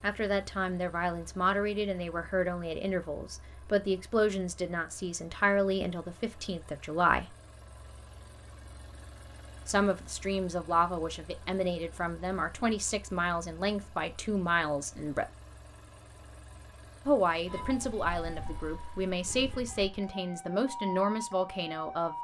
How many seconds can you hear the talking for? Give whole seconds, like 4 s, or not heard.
18 s.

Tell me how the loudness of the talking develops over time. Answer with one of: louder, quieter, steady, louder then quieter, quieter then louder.
steady.